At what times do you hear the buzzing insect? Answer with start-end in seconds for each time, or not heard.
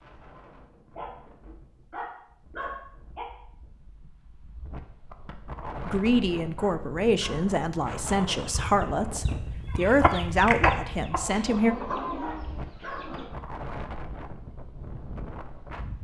not heard.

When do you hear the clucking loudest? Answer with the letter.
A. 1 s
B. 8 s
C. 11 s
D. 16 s
C.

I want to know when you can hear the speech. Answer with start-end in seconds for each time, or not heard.
5.8-11.8.